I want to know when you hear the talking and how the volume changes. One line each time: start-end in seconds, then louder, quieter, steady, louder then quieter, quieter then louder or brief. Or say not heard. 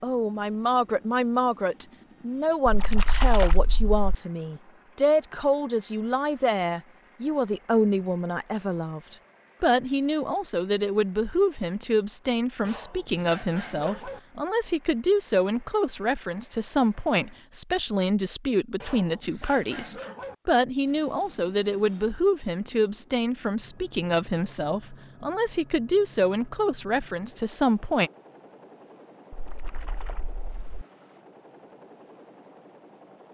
0.0-28.1 steady.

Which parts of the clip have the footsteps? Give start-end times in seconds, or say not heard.
not heard.